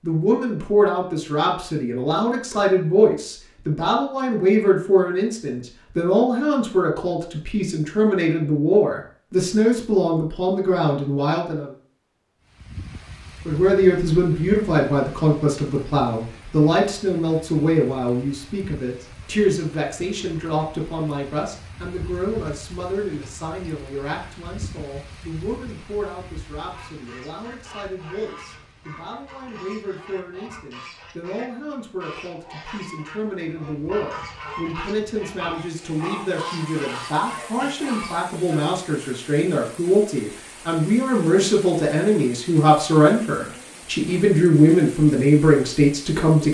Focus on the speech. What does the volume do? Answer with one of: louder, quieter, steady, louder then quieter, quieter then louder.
quieter then louder.